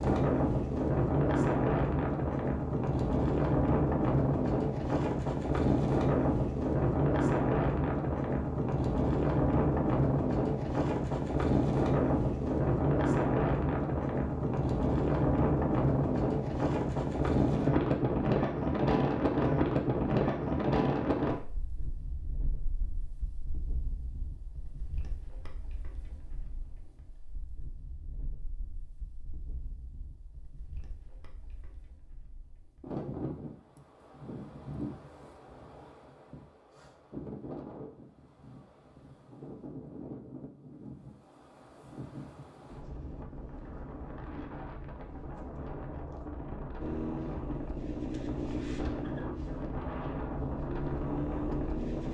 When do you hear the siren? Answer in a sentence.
The siren can't be heard in this clip.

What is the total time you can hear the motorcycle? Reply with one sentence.
You can hear the motorcycle for 5 seconds altogether.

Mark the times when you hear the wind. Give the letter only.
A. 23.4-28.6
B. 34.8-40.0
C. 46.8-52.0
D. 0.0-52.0
D.